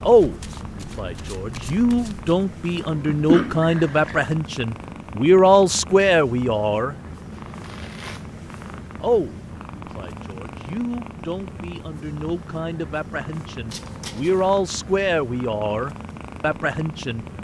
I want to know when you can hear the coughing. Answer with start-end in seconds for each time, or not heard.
2.9-4.2.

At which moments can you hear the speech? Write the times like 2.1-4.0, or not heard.
0.0-7.0, 9.0-17.2.